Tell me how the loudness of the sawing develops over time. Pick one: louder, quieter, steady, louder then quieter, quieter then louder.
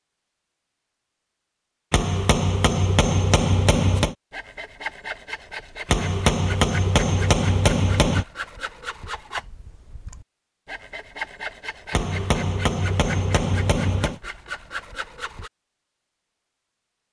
steady.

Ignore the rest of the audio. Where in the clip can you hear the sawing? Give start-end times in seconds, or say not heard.
4.0-15.5.